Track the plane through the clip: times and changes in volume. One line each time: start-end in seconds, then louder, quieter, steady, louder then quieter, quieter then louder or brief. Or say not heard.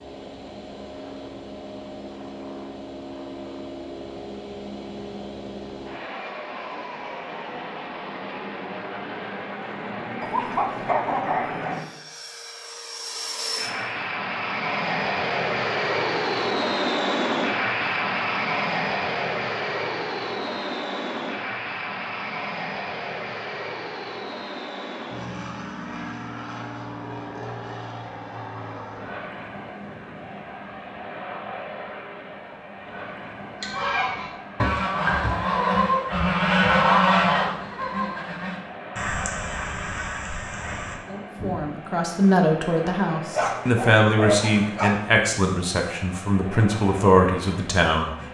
0.0-48.3 louder then quieter.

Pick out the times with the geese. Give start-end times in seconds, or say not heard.
33.6-41.6.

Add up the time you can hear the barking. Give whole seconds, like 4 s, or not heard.
3 s.